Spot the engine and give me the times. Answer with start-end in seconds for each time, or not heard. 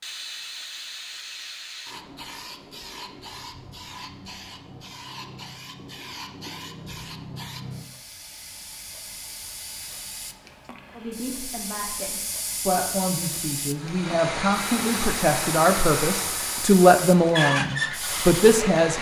13.8-18.9.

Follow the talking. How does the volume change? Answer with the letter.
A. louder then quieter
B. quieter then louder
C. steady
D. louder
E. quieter
D.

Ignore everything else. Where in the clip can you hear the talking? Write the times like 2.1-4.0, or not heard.
10.9-18.9.